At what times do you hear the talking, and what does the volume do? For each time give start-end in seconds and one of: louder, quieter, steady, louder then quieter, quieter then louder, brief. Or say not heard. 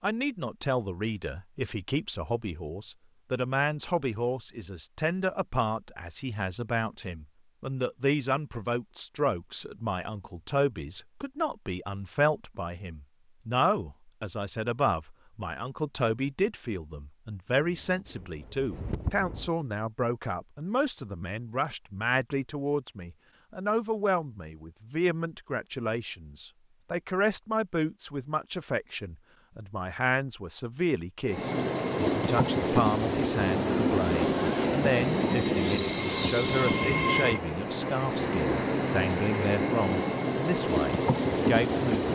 0.0-42.0 steady.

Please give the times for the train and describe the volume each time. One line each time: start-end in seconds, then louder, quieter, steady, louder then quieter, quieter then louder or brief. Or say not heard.
17.6-19.5 brief
31.2-42.1 steady.